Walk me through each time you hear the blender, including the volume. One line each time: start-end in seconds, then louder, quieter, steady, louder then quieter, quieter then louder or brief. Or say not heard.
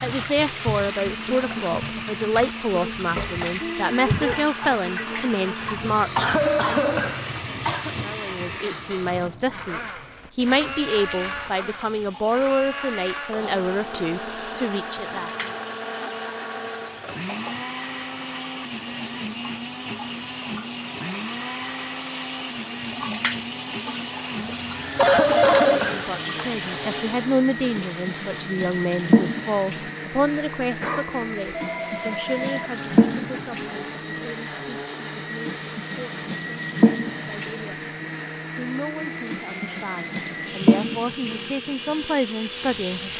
0.0-43.1 steady.